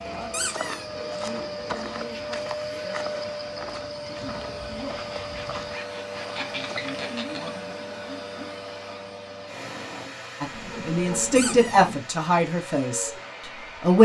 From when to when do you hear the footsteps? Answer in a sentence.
You can hear the footsteps from 0.0 to 7.0 s.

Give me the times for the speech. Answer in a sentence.
You can hear the speech from 10.4 to 13.9 s.